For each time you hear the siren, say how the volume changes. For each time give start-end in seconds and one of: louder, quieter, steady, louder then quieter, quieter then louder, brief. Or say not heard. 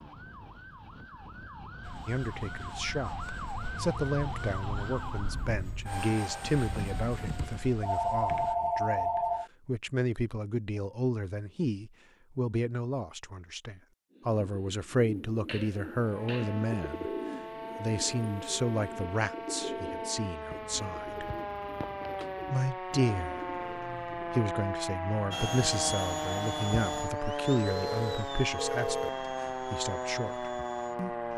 0.0-5.7 louder
15.8-31.3 louder.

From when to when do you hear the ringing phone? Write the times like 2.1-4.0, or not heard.
7.2-9.5, 27.7-29.2.